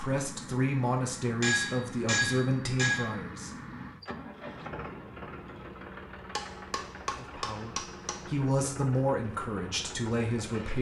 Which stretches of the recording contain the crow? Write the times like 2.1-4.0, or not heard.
not heard.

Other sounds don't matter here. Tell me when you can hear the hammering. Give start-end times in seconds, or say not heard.
1.4-3.1, 6.3-8.2.